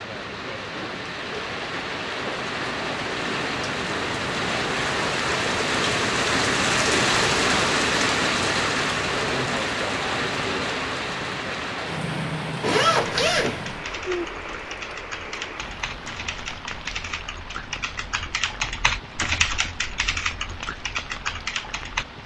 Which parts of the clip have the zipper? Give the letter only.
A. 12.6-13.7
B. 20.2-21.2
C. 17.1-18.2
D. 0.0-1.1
A.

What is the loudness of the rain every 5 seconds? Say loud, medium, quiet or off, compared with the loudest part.
medium, loud, medium, quiet, quiet.